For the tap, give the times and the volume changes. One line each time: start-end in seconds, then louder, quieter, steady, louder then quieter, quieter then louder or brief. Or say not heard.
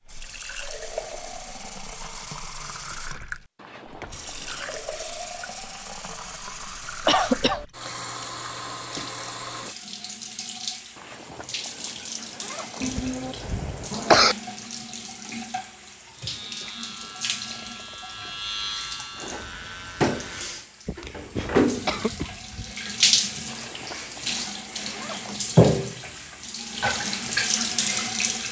0.1-28.4 louder.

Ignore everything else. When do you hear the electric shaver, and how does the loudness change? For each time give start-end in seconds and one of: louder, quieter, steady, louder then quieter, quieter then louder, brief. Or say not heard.
16.1-20.6 louder then quieter.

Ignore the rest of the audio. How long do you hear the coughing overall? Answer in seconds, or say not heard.
4 s.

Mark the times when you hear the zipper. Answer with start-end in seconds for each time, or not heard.
3.5-5.0, 10.9-12.8, 23.4-25.4.